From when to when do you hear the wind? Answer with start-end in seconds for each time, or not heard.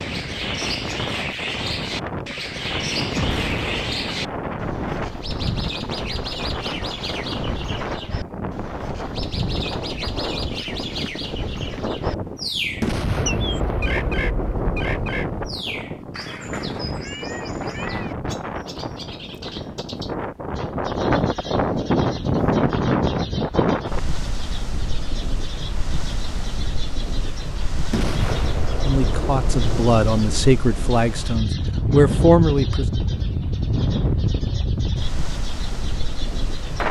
0.0-36.8.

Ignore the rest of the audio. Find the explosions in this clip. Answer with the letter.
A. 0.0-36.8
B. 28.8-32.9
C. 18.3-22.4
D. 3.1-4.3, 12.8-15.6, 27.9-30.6
D.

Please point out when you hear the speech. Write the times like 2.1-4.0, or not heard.
28.8-32.9.